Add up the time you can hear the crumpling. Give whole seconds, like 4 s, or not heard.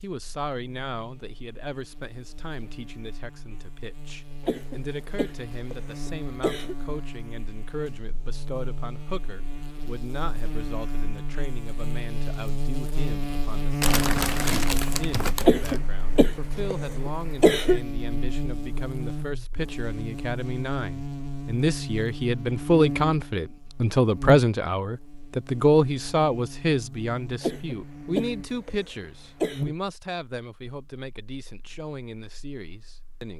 2 s.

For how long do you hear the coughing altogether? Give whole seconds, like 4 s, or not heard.
7 s.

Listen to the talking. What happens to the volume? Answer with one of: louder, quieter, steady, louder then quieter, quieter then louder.
louder then quieter.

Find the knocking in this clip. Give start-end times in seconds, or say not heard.
not heard.